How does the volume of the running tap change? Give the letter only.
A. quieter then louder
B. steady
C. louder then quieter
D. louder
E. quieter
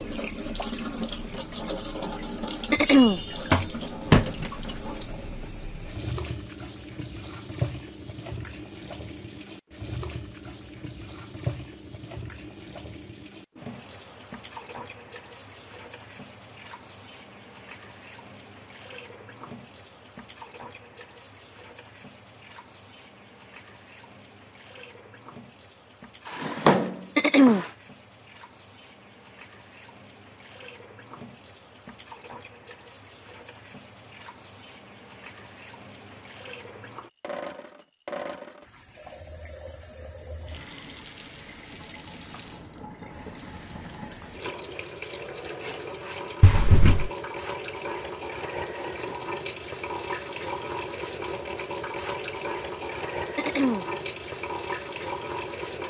A.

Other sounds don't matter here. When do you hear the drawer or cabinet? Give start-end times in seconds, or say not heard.
3.5-4.5, 26.3-27.7, 46.4-47.1.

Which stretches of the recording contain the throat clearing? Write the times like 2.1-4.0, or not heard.
2.7-3.2, 27.1-27.6, 53.4-53.9.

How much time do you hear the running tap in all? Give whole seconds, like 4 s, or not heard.
56 s.